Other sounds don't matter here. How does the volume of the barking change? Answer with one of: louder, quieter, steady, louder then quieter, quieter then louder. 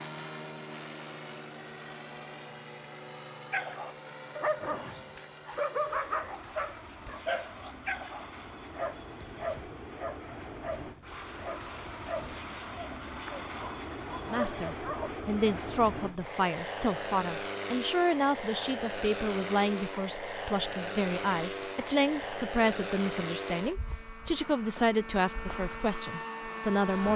quieter.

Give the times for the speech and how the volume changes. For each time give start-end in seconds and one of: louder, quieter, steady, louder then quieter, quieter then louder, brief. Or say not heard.
14.2-27.1 steady.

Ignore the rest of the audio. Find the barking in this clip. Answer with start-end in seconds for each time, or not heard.
3.5-15.2.